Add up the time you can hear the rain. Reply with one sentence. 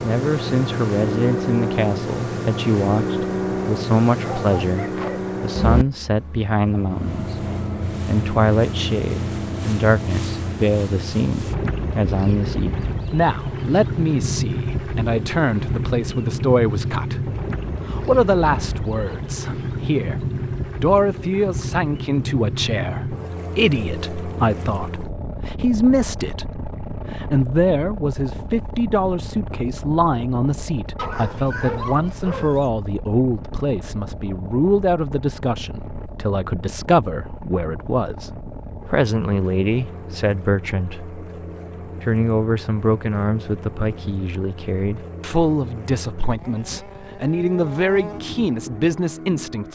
The rain can't be heard in this clip.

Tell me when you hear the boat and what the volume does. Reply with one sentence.
You can hear the boat from 0.0 to 49.7 s, getting quieter.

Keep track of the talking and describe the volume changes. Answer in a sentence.
The volume of the talking stays about the same.